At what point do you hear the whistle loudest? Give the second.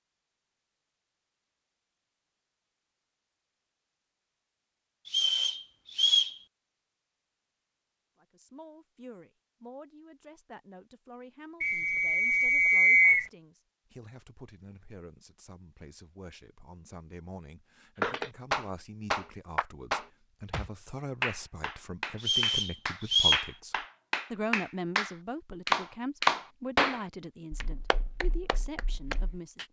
13 s.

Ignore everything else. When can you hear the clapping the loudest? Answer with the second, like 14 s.
26 s.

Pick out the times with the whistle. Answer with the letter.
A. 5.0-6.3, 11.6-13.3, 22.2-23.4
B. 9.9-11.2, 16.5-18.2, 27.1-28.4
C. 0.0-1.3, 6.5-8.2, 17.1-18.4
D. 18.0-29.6
A.